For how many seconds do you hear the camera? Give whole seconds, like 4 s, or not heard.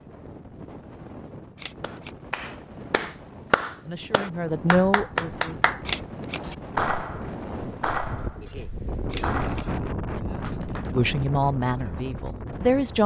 2 s.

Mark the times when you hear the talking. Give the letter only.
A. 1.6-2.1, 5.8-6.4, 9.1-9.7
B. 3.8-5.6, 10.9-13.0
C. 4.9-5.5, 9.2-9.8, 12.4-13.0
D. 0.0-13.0
B.